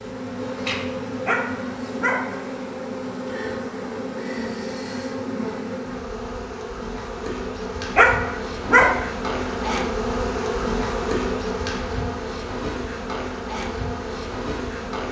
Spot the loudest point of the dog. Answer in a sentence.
The loudest moment of the dog is at 9 seconds.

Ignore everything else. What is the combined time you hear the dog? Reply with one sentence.
You can hear the dog for 2 seconds altogether.